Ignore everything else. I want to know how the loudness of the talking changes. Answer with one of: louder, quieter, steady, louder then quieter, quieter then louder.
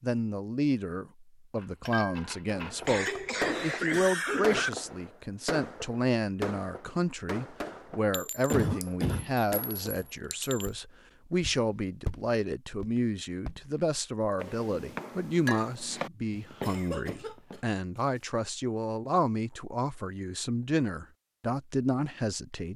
steady.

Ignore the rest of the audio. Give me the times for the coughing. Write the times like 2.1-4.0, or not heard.
2.9-4.7, 8.5-9.3, 16.6-17.6.